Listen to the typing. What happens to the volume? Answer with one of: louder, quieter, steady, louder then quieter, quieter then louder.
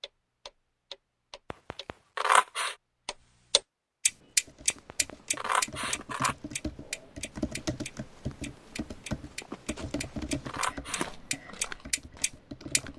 louder then quieter.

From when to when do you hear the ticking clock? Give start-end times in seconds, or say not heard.
0.0-12.9.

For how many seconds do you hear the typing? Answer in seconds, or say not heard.
9 s.